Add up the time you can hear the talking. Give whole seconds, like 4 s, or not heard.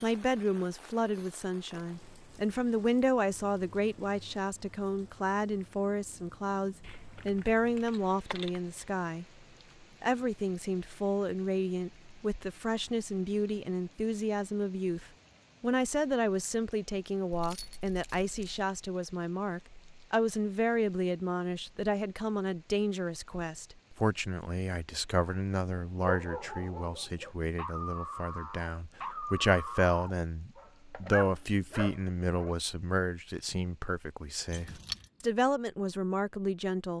36 s.